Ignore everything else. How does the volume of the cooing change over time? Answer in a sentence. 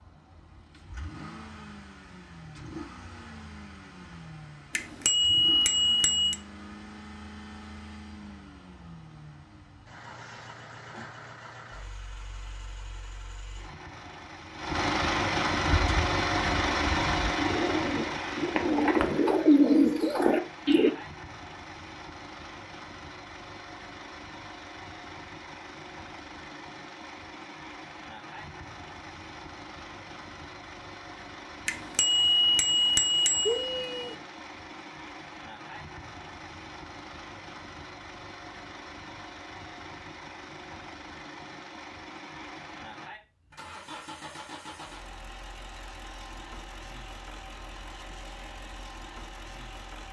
The volume of the cooing goes up.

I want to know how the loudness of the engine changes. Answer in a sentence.
The loudness of the engine goes up, then down.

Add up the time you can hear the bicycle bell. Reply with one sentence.
You can hear the bicycle bell for 4 seconds altogether.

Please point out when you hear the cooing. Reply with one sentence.
The cooing can be heard from 15.7 to 20.9 s.